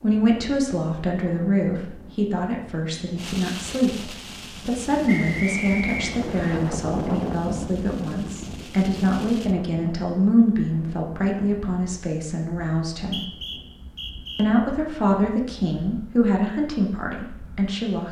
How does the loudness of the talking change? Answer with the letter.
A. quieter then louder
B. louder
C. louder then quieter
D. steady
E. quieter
D.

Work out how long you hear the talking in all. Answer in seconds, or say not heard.
17 s.